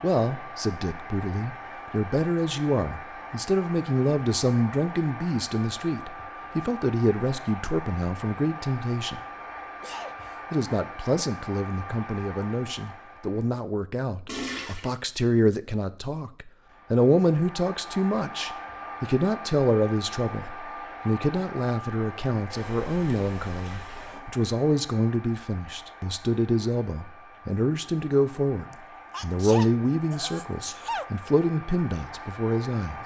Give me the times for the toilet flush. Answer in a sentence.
The toilet flush can be heard from 14.2 to 14.9 s and from 22.4 to 24.2 s.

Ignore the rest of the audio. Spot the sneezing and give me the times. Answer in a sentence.
The sneezing can be heard from 9.8 to 10.4 s and from 28.7 to 31.1 s.